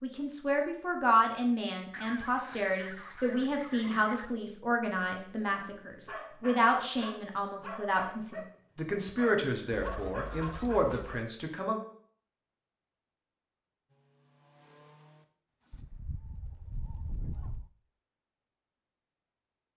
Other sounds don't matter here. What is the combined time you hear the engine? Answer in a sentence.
The engine can be heard for 2 seconds in total.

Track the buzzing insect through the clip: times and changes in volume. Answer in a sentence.
The buzzing insect can't be heard in this clip.